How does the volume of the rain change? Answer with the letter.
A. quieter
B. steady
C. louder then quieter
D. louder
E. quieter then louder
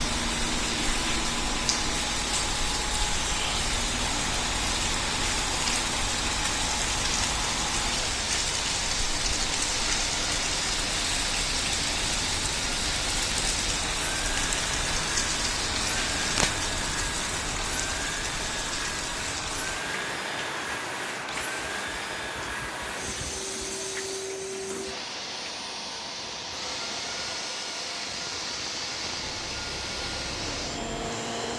A.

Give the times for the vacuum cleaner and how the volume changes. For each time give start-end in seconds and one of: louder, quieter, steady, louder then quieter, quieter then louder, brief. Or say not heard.
0.0-31.5 steady.